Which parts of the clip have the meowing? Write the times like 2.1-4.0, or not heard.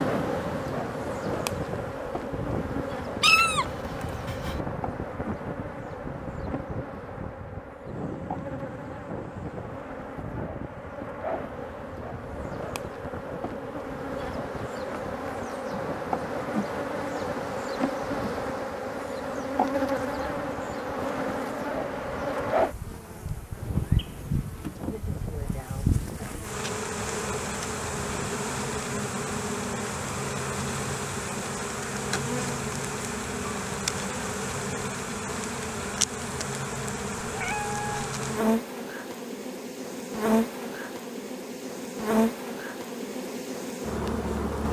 3.2-4.6, 37.2-38.1.